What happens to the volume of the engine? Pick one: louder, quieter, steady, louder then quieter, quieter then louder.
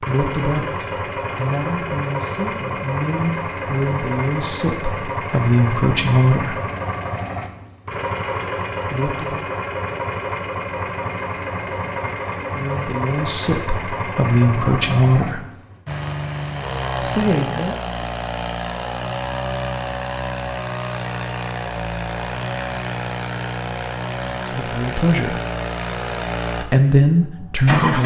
steady.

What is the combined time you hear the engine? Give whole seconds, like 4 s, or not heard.
28 s.